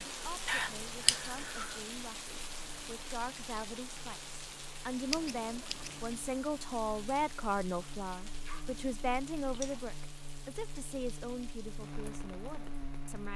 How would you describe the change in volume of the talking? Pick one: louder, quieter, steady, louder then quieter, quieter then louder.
louder then quieter.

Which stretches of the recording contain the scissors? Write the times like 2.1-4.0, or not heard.
0.5-1.8, 5.1-6.0, 9.5-10.0.